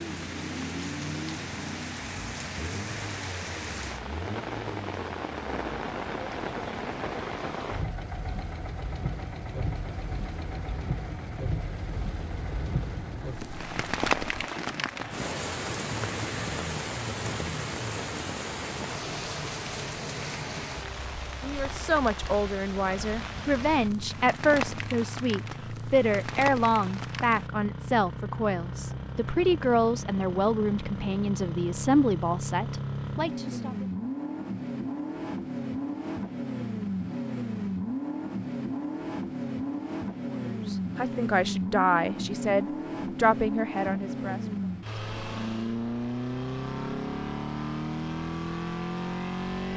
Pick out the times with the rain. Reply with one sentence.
You can hear the rain from 0.0 to 27.5 s.